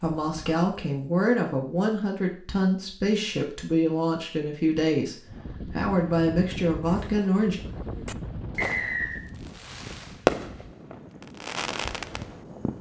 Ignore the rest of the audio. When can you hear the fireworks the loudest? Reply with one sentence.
The volume of the fireworks peaks at 10 seconds.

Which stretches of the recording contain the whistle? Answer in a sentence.
You can hear the whistle from 8.6 to 9.2 s.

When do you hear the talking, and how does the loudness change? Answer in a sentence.
You can hear the talking from 0.0 to 7.6 s, at a steady volume.